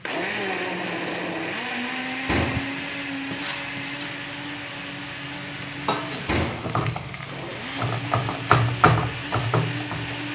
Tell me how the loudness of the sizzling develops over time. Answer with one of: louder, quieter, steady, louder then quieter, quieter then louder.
louder.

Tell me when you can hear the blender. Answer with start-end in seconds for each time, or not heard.
0.1-10.3.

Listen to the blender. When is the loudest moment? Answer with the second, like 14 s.
1 s.